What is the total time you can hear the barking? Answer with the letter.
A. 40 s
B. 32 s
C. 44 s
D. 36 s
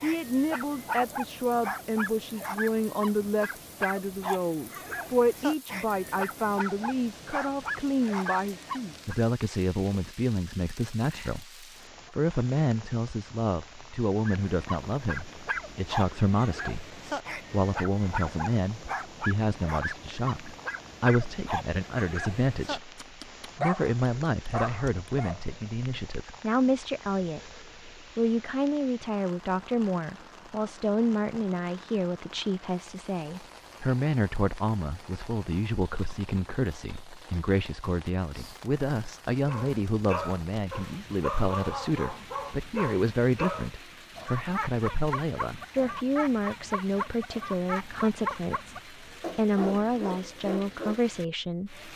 B.